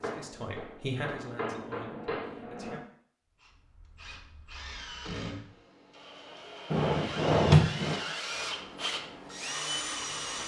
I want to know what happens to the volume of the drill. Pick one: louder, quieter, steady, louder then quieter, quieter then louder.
louder.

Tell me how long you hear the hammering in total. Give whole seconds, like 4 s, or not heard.
3 s.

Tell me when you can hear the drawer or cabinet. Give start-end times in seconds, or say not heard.
6.7-8.0.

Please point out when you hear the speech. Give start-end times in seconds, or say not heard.
0.0-2.8.